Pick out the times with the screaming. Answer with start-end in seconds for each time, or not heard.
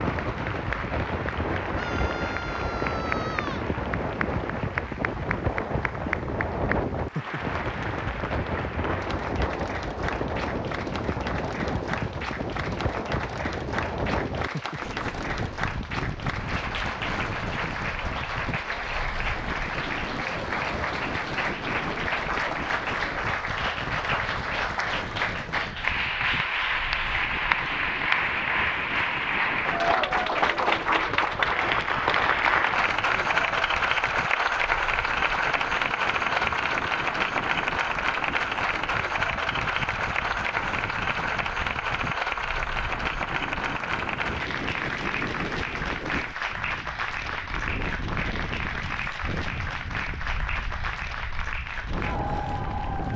1.7-3.7.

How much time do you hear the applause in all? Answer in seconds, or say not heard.
53 s.